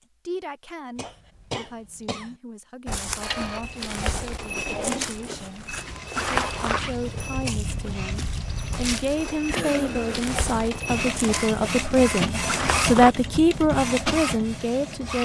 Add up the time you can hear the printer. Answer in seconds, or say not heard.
12 s.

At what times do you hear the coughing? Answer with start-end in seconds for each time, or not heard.
0.9-2.4, 9.4-10.3.